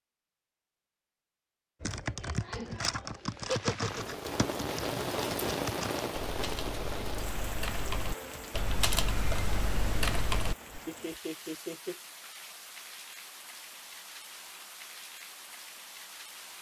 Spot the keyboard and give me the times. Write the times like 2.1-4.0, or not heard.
1.8-10.6.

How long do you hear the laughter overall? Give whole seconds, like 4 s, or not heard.
2 s.